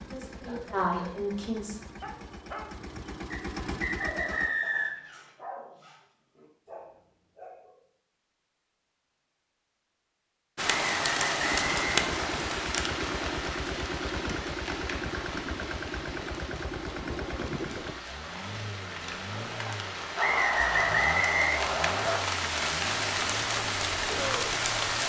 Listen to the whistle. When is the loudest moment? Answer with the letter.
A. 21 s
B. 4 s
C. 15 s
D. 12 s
A.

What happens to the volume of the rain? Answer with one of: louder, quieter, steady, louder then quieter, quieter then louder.
quieter then louder.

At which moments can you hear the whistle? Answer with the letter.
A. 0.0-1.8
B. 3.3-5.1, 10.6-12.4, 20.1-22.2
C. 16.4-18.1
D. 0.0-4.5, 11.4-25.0
B.